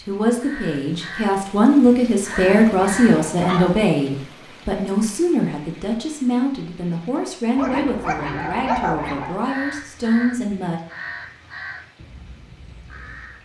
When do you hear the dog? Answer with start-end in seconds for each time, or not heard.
2.3-3.9, 7.5-9.3.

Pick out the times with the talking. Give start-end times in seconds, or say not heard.
0.0-10.8.